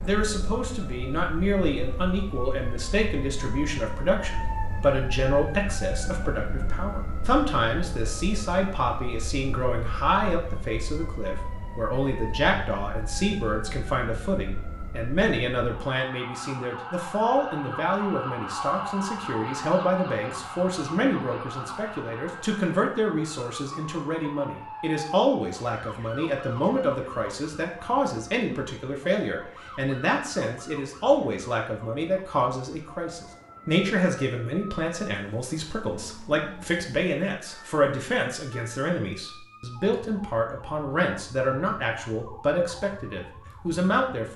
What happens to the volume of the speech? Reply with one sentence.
The volume of the speech stays about the same.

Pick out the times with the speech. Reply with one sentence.
The speech can be heard from 0.0 to 44.3 s.